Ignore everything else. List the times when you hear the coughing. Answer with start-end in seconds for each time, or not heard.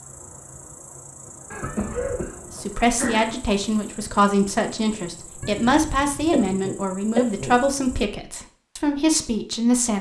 1.5-3.4, 6.3-7.6.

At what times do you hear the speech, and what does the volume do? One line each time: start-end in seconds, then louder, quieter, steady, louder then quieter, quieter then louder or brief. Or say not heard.
2.5-9.9 steady.